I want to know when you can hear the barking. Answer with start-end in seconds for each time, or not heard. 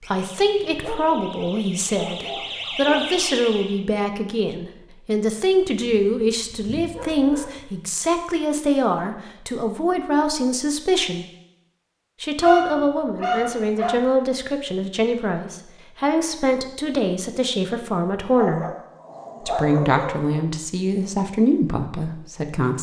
0.6-3.2, 6.0-7.7, 12.4-13.9, 18.4-20.4.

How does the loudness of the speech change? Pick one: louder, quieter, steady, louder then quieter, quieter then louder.
steady.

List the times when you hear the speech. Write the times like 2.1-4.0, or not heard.
0.1-11.2, 12.2-18.6, 19.4-22.7.